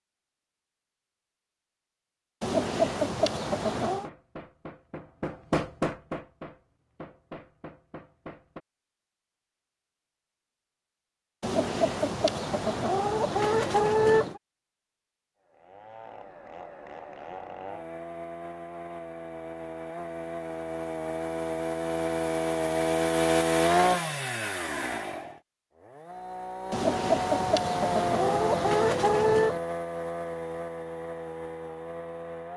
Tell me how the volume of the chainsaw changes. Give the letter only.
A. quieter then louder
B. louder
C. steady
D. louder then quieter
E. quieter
D.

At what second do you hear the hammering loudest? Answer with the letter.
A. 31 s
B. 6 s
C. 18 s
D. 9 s
B.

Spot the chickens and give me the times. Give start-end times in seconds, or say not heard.
2.4-4.1, 11.4-14.4, 26.7-29.6.